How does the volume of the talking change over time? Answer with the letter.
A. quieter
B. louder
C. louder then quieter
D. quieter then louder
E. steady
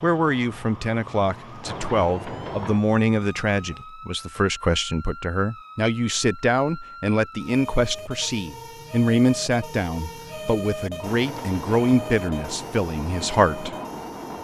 E.